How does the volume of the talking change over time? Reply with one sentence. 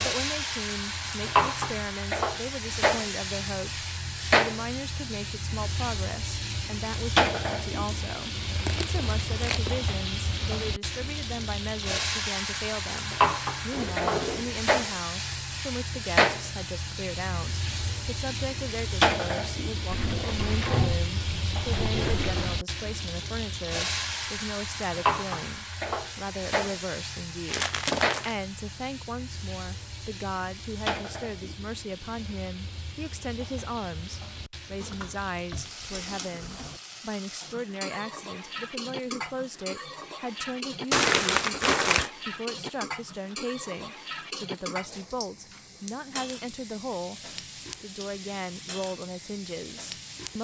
The loudness of the talking stays about the same.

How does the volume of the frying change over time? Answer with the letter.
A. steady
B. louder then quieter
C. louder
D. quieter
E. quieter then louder
D.